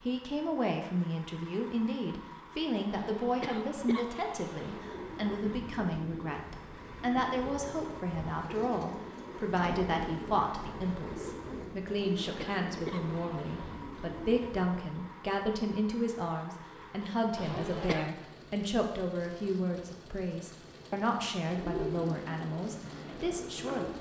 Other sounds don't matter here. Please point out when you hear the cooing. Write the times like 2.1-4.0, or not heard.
4.6-14.8, 21.4-23.9.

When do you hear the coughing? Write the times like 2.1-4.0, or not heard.
2.9-4.8, 11.8-13.8, 17.4-18.1.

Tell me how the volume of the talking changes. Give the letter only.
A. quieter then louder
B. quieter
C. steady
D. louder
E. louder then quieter
C.